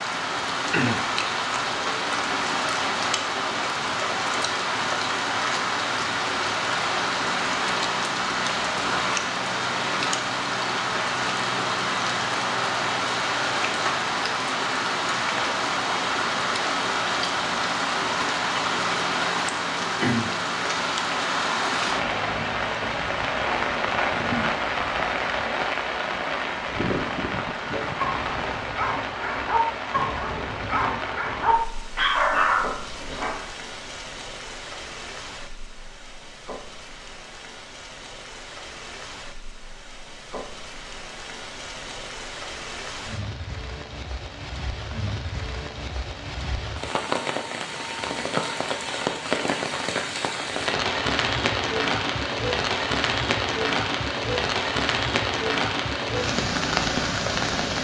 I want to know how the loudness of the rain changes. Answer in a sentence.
The loudness of the rain goes down, then up.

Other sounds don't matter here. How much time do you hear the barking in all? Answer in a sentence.
The barking can be heard for 6 seconds in total.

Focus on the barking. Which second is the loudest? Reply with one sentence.
The loudest moment of the barking is at 32 seconds.